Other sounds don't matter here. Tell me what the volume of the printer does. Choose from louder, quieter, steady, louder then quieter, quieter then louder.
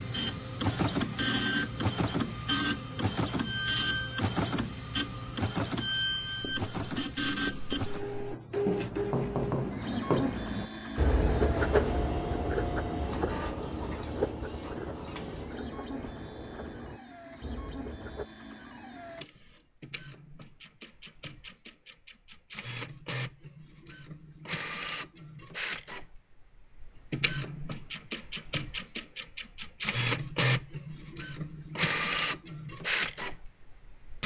quieter then louder.